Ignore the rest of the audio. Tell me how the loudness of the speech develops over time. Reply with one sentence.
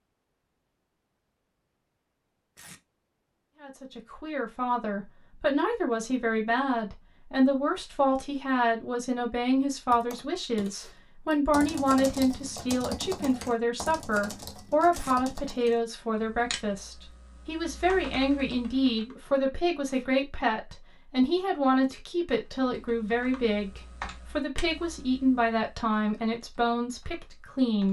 The volume of the speech stays about the same.